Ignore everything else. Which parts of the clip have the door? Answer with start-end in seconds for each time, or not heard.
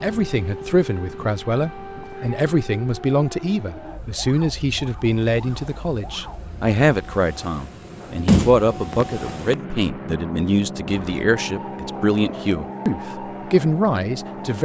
8.2-9.6.